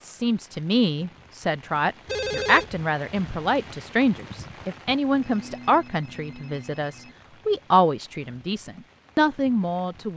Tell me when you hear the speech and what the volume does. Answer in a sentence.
The speech can be heard from 0.0 to 10.1 s, at a steady volume.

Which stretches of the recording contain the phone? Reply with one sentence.
You can hear the phone from 2.0 to 2.9 s and from 5.1 to 7.2 s.